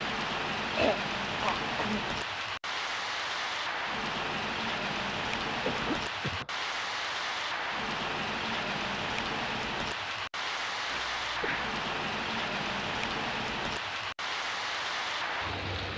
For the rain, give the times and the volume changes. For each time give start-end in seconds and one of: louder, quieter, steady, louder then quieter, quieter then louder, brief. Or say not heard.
0.0-15.9 steady.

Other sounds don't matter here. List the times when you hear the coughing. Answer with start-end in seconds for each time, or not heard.
0.7-2.0, 5.7-6.5, 10.9-11.8.